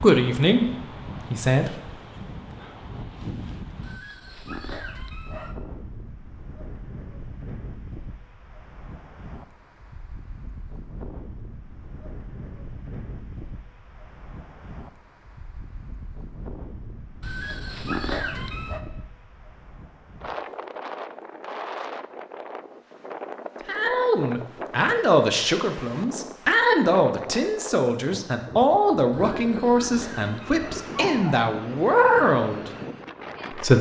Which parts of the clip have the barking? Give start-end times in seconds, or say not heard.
3.8-5.5, 17.2-18.8, 29.1-31.4.